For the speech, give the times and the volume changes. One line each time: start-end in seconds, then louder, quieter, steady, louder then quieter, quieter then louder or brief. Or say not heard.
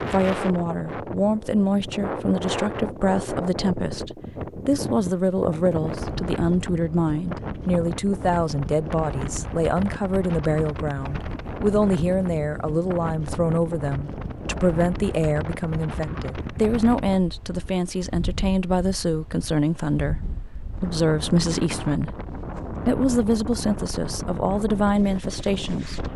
0.1-26.1 steady.